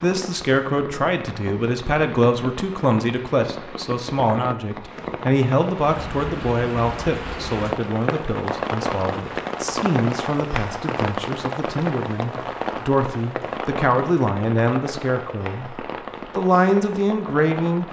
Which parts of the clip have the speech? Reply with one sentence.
You can hear the speech from 0.0 to 17.8 s.